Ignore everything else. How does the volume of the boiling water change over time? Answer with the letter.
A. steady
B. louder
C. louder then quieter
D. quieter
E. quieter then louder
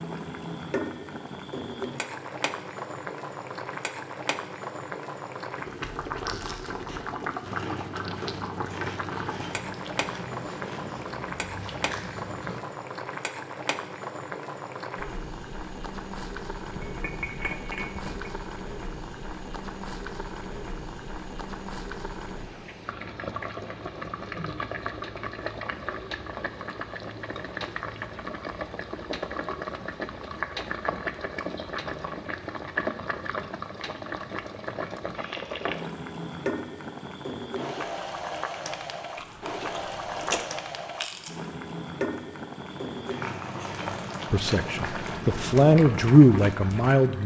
A.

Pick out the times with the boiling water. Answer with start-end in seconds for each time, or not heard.
0.0-47.2.